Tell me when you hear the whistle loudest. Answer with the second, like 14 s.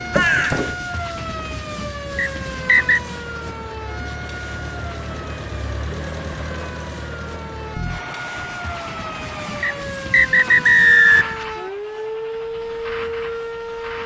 11 s.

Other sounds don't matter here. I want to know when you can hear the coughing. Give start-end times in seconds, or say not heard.
0.1-0.8.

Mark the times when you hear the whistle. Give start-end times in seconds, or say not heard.
2.1-3.0, 9.6-11.4.